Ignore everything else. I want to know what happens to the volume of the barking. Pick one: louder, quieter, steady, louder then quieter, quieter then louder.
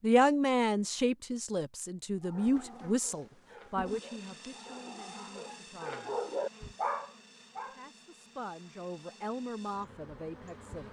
louder.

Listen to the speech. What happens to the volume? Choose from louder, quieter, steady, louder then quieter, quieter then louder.
quieter then louder.